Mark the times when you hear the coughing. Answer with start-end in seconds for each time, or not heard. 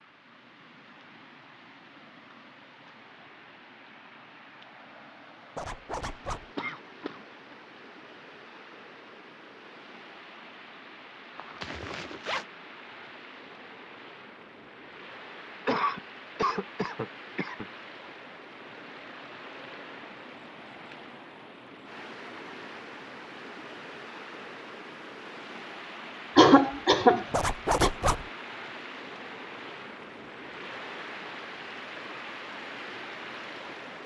6.5-7.5, 15.7-17.6, 26.4-27.9.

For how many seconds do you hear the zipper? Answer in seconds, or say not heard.
3 s.